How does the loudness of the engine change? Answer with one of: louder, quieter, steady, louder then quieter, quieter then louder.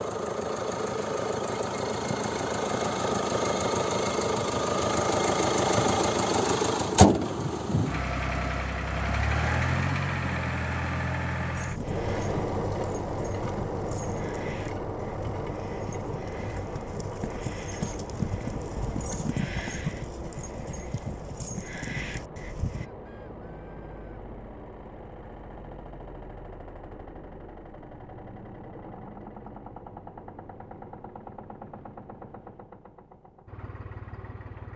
quieter.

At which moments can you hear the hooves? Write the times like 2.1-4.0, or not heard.
11.5-22.9.